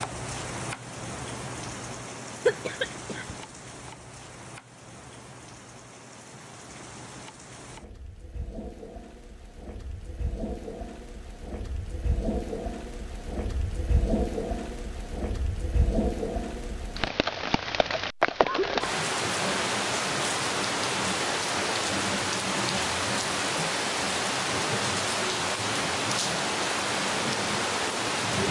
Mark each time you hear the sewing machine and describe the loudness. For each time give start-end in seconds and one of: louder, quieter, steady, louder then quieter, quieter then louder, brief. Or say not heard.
not heard.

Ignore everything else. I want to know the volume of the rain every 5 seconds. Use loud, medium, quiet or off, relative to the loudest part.
medium, quiet, medium, loud, loud, loud.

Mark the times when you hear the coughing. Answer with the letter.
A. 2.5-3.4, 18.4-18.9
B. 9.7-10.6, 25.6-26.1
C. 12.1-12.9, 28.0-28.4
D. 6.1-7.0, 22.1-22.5
A.